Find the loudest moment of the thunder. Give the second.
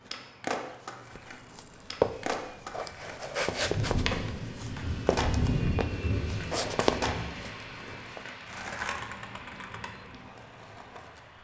6 s.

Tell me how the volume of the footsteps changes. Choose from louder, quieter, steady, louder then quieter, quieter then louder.
quieter then louder.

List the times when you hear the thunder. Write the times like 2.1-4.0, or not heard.
3.5-8.0.